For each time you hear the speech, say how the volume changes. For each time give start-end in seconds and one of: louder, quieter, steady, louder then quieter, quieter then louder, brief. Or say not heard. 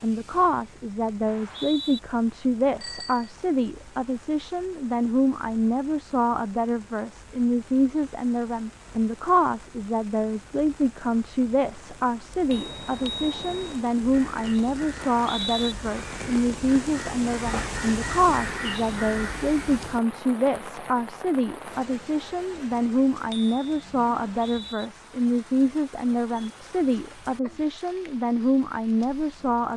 0.0-29.7 steady.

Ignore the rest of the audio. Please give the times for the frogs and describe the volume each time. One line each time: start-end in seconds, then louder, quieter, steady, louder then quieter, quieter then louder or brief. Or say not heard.
not heard.